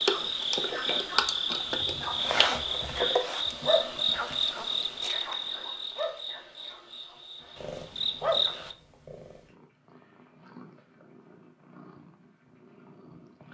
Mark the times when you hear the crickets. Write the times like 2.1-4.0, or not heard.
0.0-8.8.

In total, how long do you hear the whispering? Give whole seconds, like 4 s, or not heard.
not heard.